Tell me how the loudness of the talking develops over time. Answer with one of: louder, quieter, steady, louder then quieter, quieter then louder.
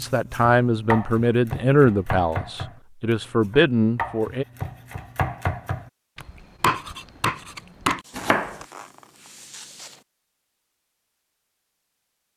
quieter then louder.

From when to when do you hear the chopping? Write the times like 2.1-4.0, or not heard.
0.0-8.7.